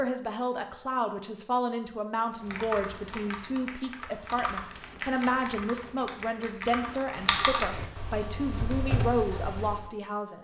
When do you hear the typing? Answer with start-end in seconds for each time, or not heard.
2.3-9.8.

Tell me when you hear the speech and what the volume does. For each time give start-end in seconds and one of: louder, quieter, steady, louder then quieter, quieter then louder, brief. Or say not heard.
0.0-10.3 steady.